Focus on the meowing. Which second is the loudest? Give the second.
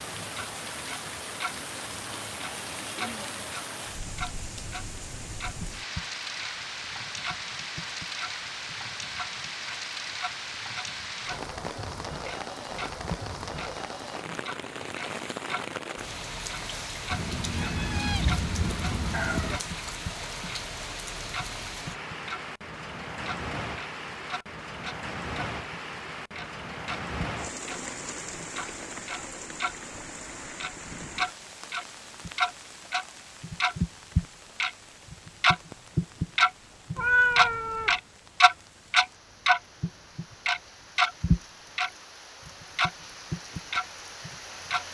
37 s.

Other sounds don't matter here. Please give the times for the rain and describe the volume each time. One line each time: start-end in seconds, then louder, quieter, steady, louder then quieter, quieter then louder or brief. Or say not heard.
0.0-44.8 quieter.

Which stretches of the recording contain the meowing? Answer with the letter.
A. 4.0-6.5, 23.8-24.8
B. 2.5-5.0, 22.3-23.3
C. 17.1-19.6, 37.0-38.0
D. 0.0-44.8
C.